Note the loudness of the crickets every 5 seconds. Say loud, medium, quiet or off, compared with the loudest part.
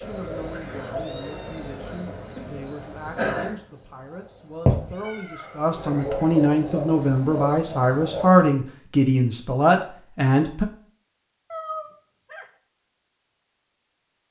loud, loud, off.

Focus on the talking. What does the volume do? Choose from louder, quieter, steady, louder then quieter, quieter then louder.
louder.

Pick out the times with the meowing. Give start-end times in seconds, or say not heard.
0.9-2.6, 4.8-5.8, 11.5-12.5.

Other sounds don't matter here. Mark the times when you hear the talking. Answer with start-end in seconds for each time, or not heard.
0.0-10.7.